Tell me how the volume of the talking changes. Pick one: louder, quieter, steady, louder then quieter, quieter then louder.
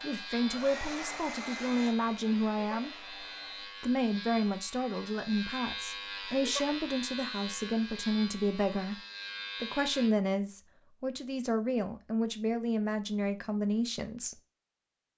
steady.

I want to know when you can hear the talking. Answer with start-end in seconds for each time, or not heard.
0.0-3.0, 3.8-9.0, 9.6-14.3.